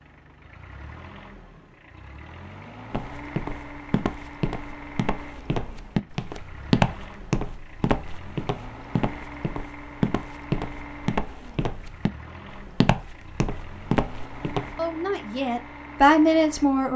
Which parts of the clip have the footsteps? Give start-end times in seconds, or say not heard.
2.9-14.8.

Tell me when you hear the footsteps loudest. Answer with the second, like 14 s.
7 s.